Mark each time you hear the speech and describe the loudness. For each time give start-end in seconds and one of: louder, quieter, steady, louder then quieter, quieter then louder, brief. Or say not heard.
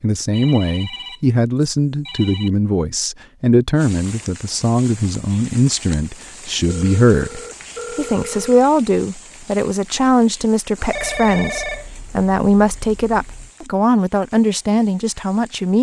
0.0-15.7 steady.